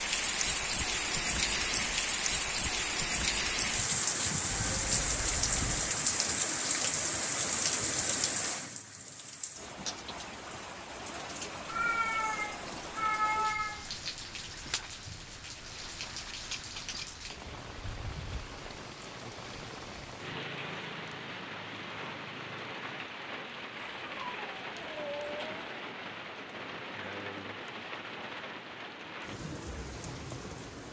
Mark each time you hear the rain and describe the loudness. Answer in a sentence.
The rain can be heard from 0.0 to 30.8 s, getting quieter.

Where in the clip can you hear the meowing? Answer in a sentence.
The meowing can be heard from 4.5 to 5.8 s, from 11.7 to 14.1 s and from 23.8 to 25.6 s.